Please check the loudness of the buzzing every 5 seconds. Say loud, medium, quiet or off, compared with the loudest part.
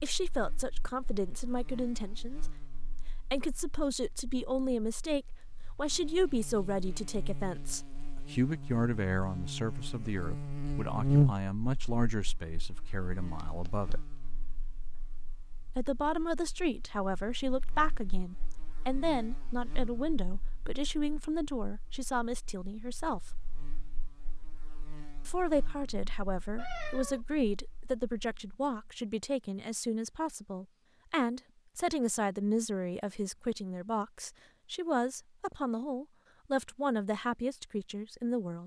quiet, quiet, loud, quiet, quiet, quiet, off, off.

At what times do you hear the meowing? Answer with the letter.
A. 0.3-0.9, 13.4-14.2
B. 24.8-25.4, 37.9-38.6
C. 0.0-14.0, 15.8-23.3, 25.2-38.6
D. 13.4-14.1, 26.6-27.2
D.